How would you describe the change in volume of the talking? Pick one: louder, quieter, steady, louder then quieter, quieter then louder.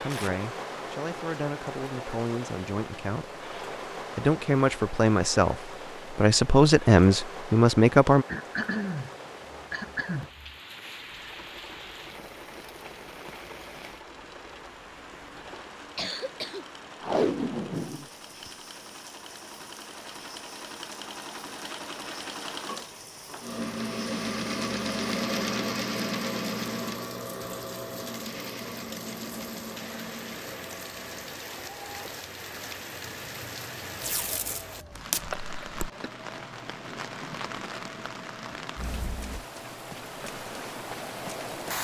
louder.